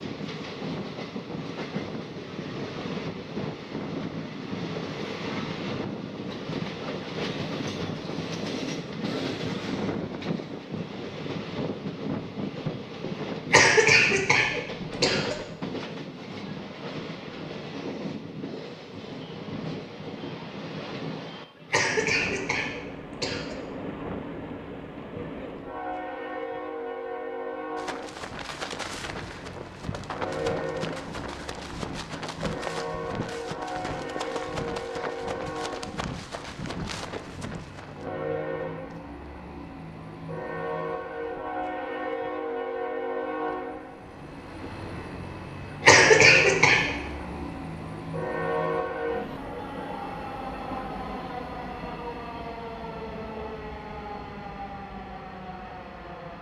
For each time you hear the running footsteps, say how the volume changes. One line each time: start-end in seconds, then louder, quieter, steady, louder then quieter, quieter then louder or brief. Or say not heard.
27.8-38.1 steady.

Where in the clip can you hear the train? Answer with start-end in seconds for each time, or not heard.
0.0-56.3.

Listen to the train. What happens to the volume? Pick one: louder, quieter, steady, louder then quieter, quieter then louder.
steady.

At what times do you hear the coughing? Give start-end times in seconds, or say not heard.
13.5-15.3, 21.7-23.6, 45.9-46.9.